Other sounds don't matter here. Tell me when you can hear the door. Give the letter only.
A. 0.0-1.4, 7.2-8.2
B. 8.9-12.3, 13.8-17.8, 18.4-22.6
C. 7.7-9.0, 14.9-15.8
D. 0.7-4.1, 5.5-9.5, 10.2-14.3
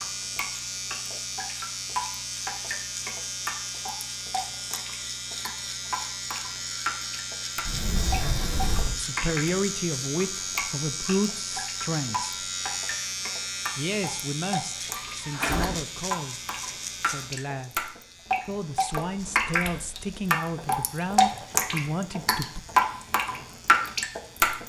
C.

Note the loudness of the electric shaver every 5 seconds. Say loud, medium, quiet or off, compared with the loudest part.
loud, loud, loud, medium, quiet.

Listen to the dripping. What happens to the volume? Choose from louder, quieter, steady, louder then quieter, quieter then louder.
louder.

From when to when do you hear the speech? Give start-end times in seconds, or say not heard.
8.9-12.3, 13.8-17.8, 18.4-22.6.